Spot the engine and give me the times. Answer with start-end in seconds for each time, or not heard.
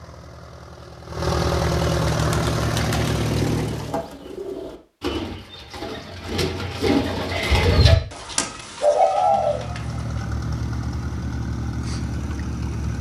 0.0-4.0, 9.1-12.9.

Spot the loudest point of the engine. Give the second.
2 s.